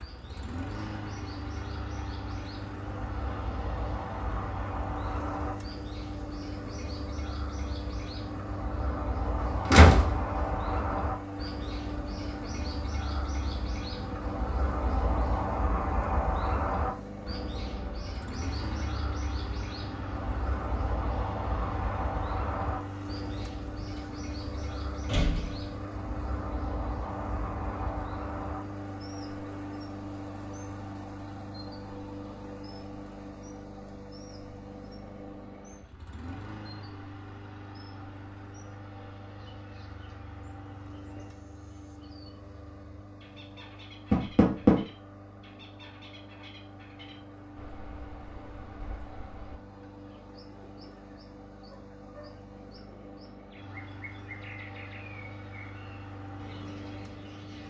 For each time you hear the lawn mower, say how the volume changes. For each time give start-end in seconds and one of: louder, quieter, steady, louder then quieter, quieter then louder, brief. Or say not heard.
0.0-57.6 quieter.